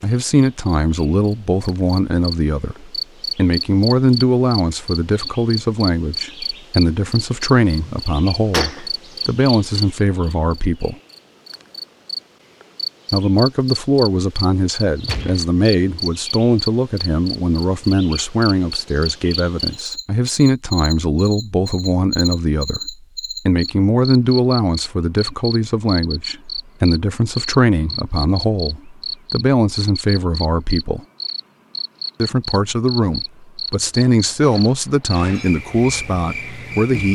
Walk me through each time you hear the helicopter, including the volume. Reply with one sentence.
You can't hear the helicopter here.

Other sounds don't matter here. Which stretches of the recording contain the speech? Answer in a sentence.
You can hear the speech from 0.0 to 10.9 s, from 13.1 to 31.0 s and from 32.2 to 37.0 s.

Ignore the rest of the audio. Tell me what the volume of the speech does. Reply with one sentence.
The volume of the speech stays about the same.